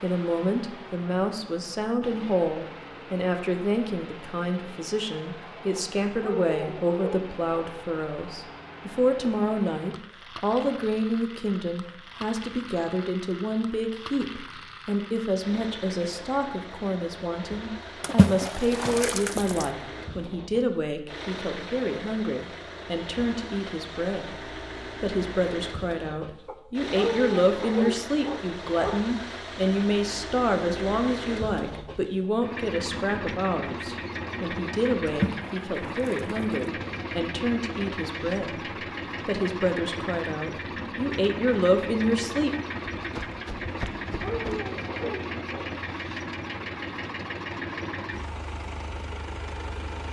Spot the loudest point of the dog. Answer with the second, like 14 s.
27 s.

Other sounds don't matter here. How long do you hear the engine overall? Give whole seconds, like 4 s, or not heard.
50 s.